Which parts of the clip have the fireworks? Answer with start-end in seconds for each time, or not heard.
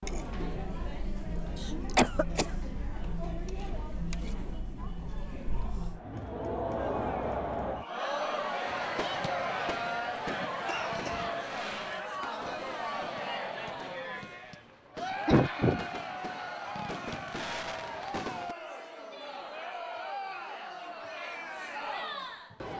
8.7-18.6.